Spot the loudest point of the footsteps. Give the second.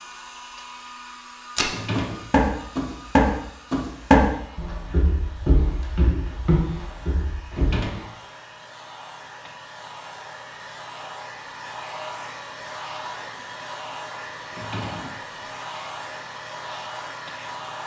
4 s.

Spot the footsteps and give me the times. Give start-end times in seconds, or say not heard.
1.6-7.8.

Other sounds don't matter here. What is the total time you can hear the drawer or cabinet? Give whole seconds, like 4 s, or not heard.
2 s.